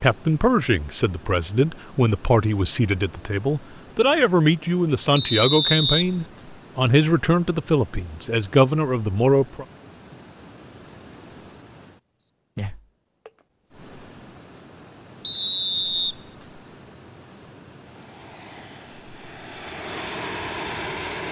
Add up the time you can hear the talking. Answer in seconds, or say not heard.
10 s.